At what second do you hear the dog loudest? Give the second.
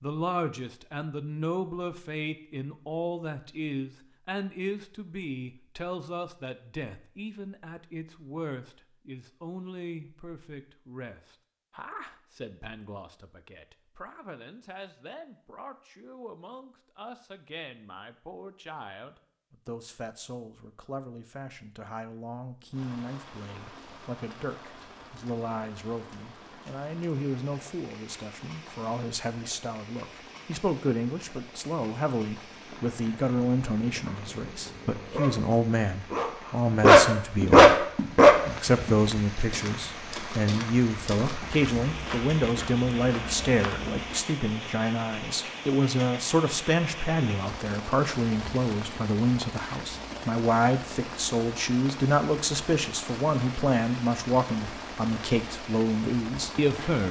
38 s.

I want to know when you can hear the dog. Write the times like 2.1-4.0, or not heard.
33.8-38.4.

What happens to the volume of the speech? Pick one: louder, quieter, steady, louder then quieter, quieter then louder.
quieter then louder.